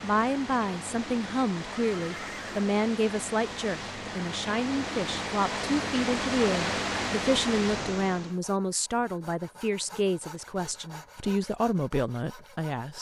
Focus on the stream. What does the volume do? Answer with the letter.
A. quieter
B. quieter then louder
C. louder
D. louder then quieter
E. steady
C.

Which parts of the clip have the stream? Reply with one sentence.
You can hear the stream from 0.0 to 8.4 s.